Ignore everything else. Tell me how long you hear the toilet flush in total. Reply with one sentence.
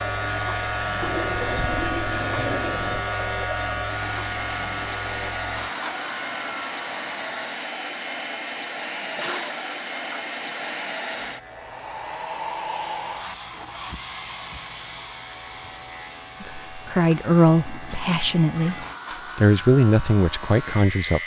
You can hear the toilet flush for 5 seconds altogether.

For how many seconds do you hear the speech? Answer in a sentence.
The speech can be heard for 5 seconds in total.